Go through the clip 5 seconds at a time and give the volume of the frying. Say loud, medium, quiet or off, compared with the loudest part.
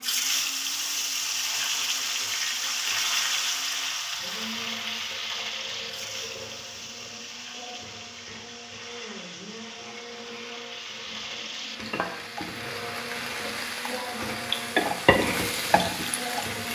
loud, medium, medium, loud.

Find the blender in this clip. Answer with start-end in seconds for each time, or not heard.
0.0-16.6.